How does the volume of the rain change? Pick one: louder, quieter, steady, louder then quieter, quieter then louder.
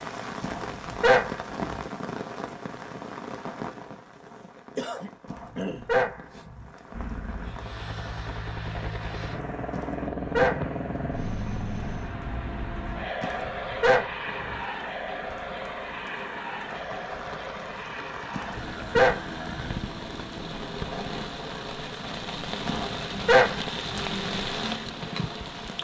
quieter then louder.